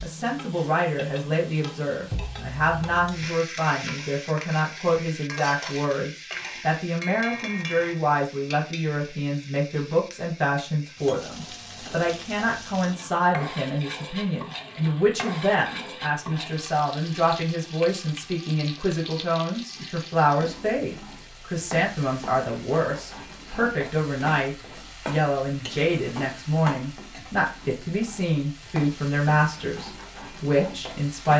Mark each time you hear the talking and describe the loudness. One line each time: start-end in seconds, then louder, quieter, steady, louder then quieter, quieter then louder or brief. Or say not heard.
0.0-31.3 steady.